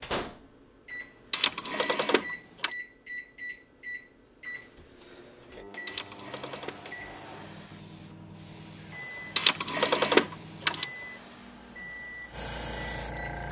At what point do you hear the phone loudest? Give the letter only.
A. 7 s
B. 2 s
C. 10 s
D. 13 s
C.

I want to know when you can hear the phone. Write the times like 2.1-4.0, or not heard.
1.3-2.7, 5.8-6.8, 9.3-10.8.